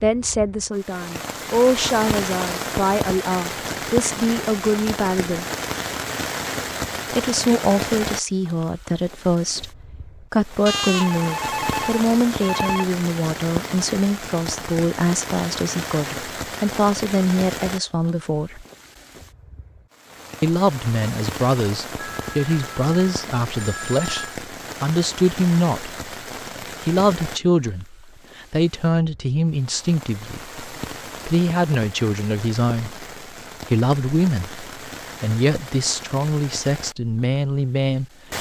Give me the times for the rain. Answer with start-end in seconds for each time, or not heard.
0.0-38.3.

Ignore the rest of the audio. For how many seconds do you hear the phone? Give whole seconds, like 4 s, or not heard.
5 s.